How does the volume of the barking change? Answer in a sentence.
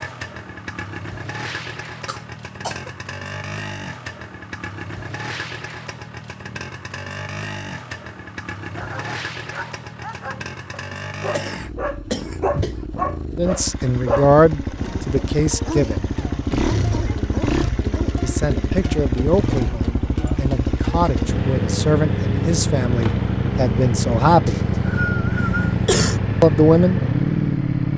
The loudness of the barking goes up, then down.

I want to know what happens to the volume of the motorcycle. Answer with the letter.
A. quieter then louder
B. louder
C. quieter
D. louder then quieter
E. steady
B.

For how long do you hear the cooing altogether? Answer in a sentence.
You can't hear the cooing here.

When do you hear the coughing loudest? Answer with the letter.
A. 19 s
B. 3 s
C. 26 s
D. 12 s
C.